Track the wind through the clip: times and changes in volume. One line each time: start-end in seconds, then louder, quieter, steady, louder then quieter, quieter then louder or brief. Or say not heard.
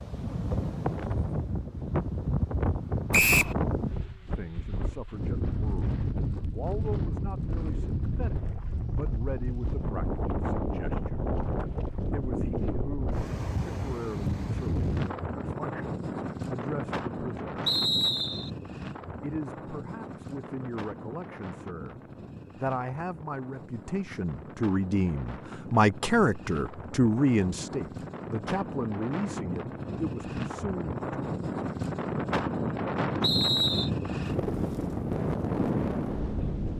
0.0-36.7 quieter then louder.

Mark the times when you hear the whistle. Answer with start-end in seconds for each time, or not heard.
3.1-3.5, 17.6-18.5, 33.2-33.9.